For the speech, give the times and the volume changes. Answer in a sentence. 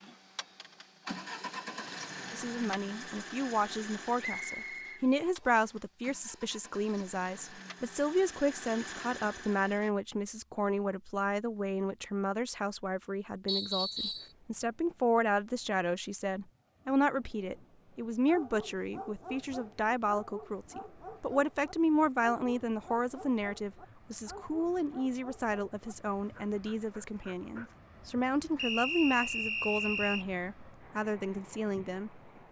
You can hear the speech from 2.3 to 32.2 s, at a steady volume.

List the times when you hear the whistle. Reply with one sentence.
The whistle can be heard from 4.2 to 5.7 s, from 13.4 to 14.3 s and from 28.6 to 30.2 s.